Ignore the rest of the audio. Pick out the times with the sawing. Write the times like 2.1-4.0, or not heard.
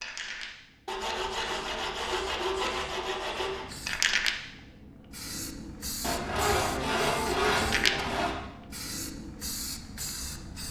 0.8-3.6, 6.0-8.3.